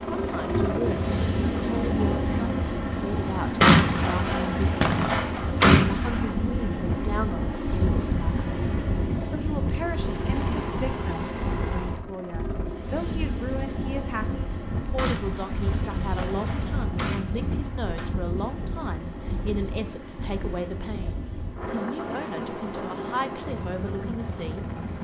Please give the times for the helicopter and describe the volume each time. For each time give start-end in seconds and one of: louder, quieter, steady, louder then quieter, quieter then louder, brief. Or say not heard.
0.0-24.9 quieter.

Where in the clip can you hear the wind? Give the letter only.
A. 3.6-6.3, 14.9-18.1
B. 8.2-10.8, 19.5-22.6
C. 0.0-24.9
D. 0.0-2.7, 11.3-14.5
C.